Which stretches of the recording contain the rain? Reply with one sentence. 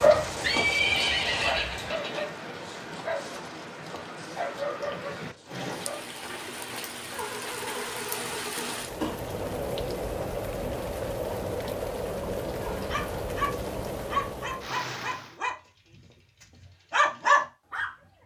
The rain can be heard from 0.0 to 15.3 s.